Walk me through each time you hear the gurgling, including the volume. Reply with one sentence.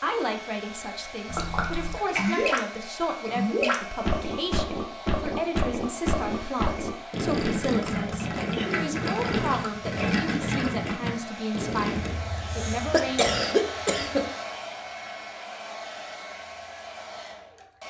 You can hear the gurgling from 1.2 to 12.1 s, at a steady volume.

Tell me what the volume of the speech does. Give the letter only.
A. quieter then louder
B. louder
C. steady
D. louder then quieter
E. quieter
C.